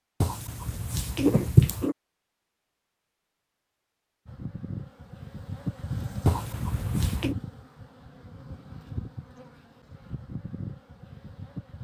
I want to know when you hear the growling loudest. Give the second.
1 s.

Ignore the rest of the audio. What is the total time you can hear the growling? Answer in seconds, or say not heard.
3 s.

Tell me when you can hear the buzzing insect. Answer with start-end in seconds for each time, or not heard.
4.2-11.7.